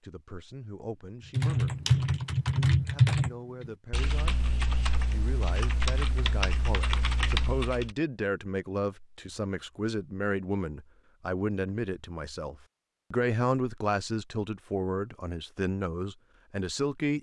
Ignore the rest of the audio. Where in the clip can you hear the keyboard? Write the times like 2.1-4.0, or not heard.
1.3-8.0.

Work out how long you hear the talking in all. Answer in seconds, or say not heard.
16 s.